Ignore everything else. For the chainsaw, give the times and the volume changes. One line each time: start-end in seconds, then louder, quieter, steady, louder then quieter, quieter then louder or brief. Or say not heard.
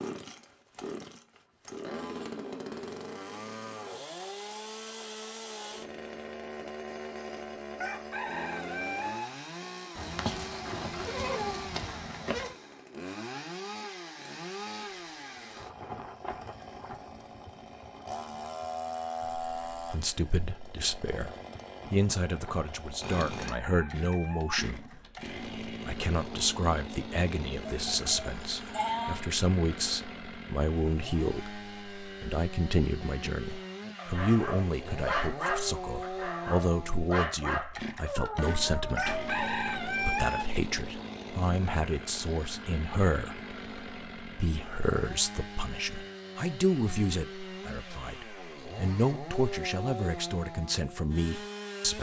0.0-51.9 steady.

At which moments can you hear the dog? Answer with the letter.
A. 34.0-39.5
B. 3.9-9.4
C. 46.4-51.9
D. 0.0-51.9
A.